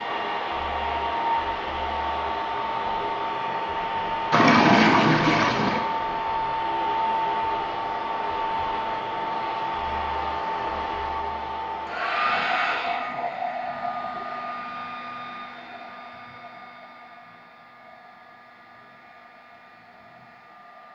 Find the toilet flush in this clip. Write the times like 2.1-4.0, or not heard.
4.3-5.8.